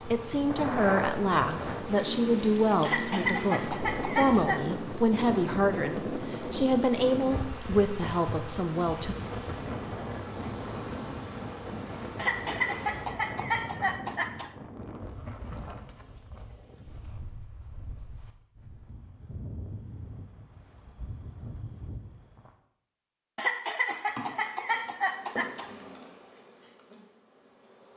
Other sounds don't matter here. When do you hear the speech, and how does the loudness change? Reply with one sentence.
The speech can be heard from 0.1 to 9.2 s, at a steady volume.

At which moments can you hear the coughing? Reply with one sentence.
You can hear the coughing from 2.8 to 4.6 s, from 12.2 to 14.5 s and from 23.4 to 25.7 s.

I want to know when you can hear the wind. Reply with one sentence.
You can hear the wind from 0.0 to 22.6 s.